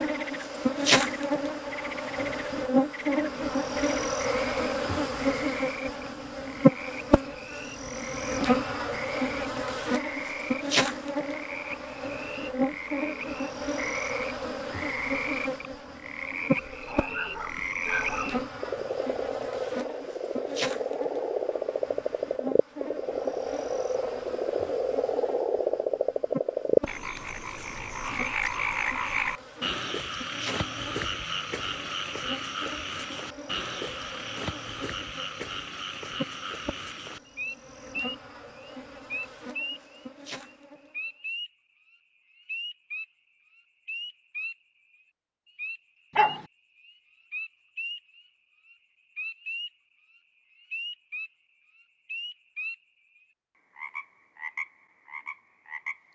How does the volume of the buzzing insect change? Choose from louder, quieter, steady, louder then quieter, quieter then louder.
quieter.